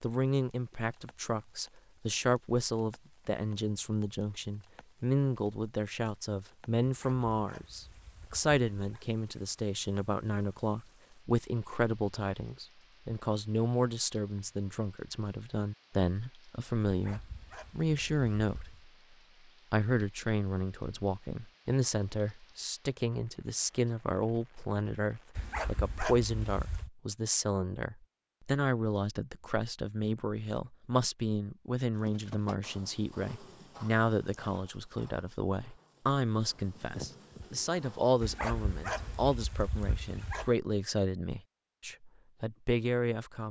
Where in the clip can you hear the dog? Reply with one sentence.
The dog can be heard from 6.8 to 9.1 s, from 16.9 to 18.9 s, from 25.4 to 26.9 s and from 38.2 to 40.5 s.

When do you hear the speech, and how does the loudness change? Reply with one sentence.
You can hear the speech from 0.0 to 18.9 s, at a steady volume; and from 19.7 to 43.4 s, at a steady volume.